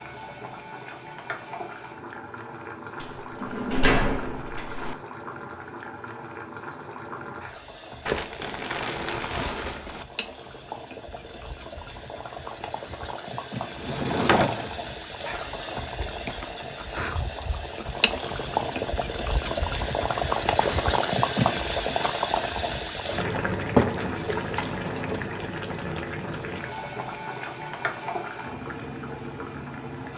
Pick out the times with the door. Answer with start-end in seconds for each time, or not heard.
3.0-5.0, 13.8-14.8, 23.8-25.2.